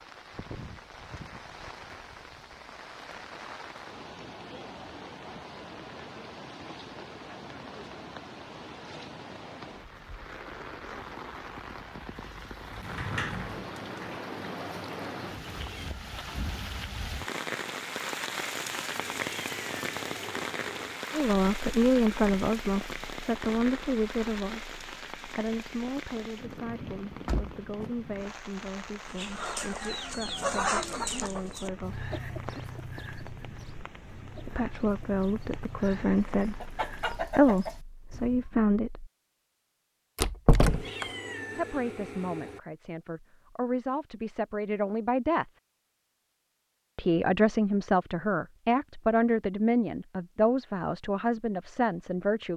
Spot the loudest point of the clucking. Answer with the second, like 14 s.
31 s.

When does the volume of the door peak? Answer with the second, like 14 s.
41 s.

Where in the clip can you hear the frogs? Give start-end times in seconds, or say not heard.
not heard.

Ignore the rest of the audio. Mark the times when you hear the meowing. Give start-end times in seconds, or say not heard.
15.3-16.0, 18.9-20.9, 40.6-42.6.